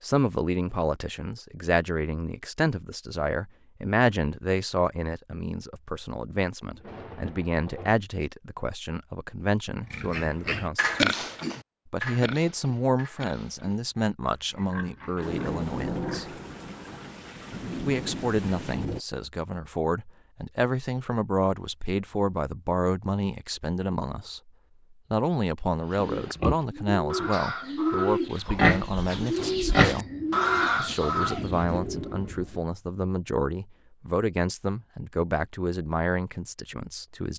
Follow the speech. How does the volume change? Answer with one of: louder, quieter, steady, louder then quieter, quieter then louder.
steady.